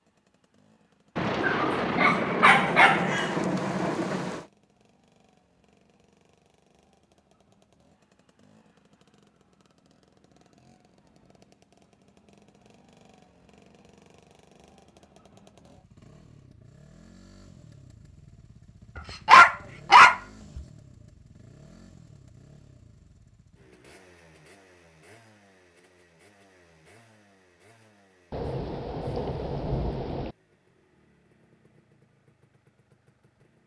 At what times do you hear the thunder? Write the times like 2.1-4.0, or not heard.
1.1-4.5, 28.3-30.4.